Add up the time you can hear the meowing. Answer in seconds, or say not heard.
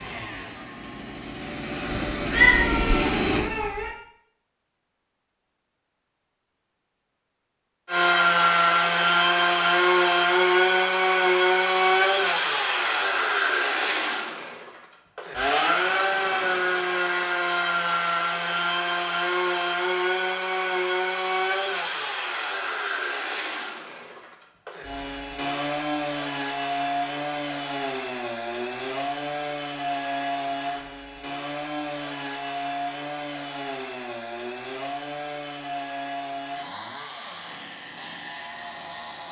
2 s.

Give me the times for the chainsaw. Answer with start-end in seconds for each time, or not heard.
0.0-3.5, 7.8-39.2.